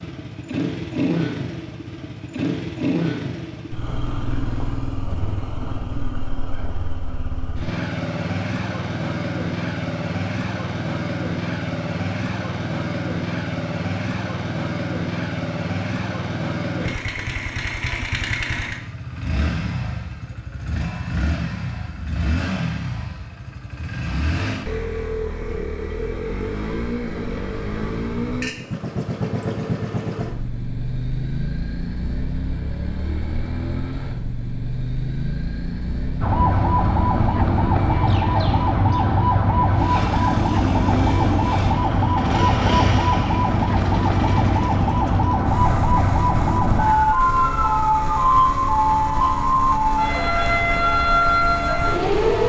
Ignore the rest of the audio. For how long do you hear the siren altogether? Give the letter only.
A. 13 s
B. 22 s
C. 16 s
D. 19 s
C.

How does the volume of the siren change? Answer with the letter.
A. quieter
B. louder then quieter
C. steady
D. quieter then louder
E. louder
C.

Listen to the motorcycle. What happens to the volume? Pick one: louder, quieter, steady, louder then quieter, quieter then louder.
steady.